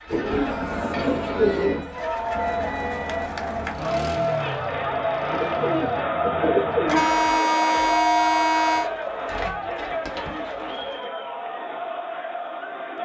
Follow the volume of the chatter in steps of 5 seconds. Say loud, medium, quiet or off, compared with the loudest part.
loud, loud, medium.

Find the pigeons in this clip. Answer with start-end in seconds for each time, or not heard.
0.1-1.9, 5.3-7.0, 8.7-11.0.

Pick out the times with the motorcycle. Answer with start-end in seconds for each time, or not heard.
0.0-6.1.